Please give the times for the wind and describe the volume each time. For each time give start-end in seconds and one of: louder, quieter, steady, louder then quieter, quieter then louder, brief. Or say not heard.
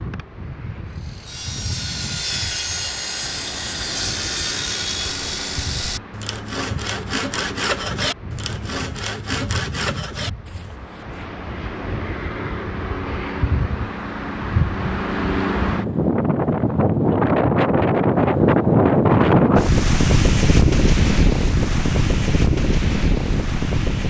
0.0-24.0 louder.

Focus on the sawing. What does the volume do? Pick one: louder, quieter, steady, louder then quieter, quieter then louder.
steady.